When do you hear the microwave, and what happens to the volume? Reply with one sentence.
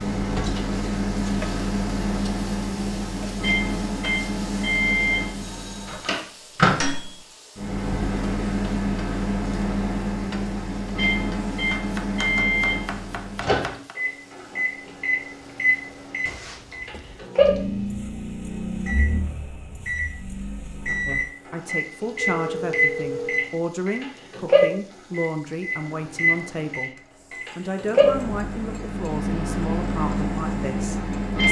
You can hear the microwave from 0.0 to 31.4 s, at a steady volume.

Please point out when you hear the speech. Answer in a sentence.
The speech can be heard from 21.1 to 26.9 s and from 27.6 to 31.4 s.